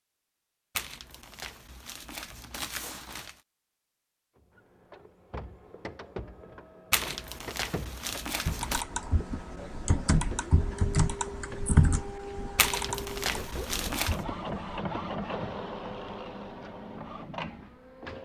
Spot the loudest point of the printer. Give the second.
15 s.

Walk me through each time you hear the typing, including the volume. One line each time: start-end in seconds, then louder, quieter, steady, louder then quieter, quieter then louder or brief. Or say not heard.
8.4-14.8 louder then quieter.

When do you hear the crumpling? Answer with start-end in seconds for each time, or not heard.
0.8-3.4, 6.9-8.8, 12.6-14.2.